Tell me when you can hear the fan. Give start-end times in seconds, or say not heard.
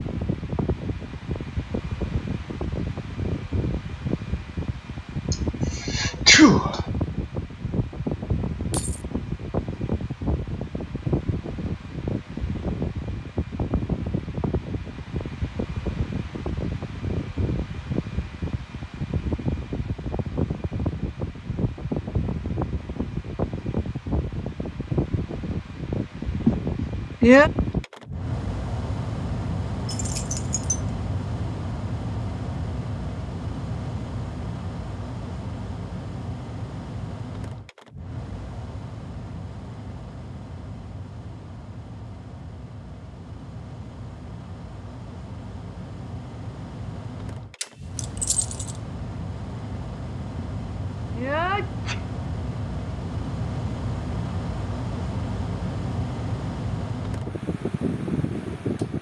0.0-58.9.